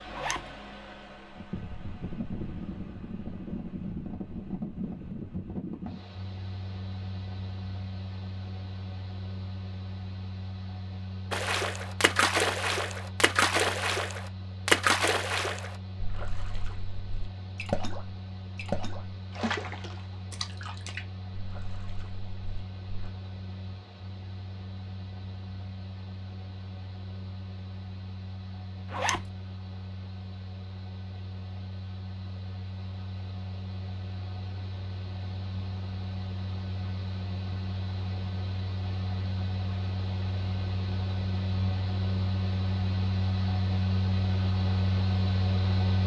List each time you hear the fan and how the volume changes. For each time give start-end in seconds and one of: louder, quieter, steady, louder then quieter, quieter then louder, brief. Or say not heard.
0.0-46.0 quieter then louder.